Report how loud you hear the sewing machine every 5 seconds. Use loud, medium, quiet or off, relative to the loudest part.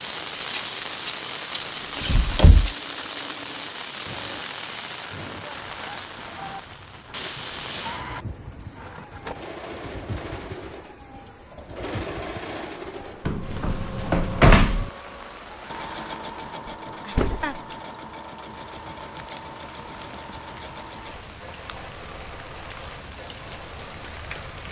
medium, loud, loud, loud, medium.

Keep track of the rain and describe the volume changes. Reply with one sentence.
The volume of the rain goes down.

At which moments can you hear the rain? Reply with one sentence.
You can hear the rain from 0.0 to 24.6 s.